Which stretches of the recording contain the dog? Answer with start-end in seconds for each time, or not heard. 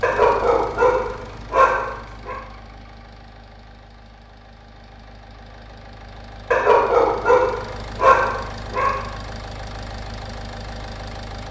0.0-2.4, 6.5-9.1.